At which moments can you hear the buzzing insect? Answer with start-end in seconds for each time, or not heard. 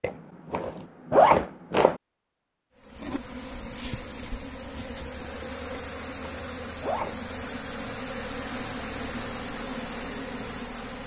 2.8-11.0.